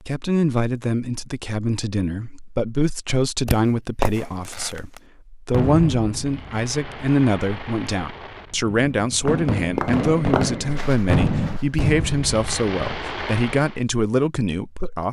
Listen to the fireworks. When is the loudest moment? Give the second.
11 s.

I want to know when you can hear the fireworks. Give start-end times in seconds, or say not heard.
3.5-13.8.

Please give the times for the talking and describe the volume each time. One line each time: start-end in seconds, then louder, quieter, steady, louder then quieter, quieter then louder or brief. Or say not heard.
0.1-15.0 steady.